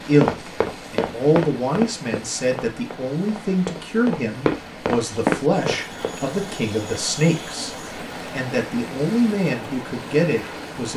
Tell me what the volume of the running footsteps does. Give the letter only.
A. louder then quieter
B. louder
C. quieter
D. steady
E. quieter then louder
E.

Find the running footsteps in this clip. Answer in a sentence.
The running footsteps can be heard from 0.1 to 6.2 s.